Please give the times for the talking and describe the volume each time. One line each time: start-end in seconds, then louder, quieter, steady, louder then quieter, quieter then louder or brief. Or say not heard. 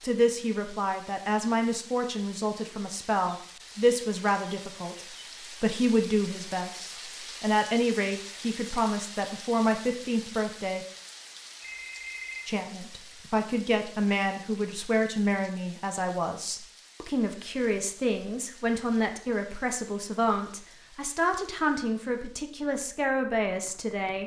0.0-10.8 steady
12.4-24.2 steady.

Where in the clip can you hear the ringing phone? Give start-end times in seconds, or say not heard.
11.6-12.5.